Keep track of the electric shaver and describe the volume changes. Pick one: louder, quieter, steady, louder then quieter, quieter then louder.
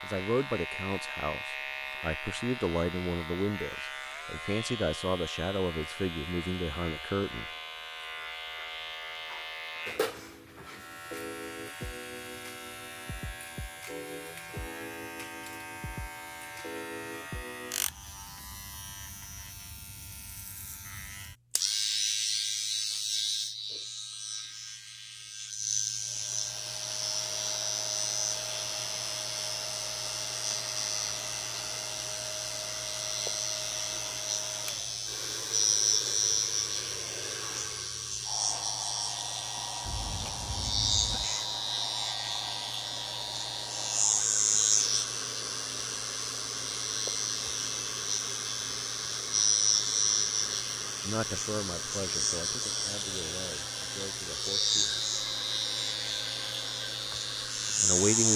louder.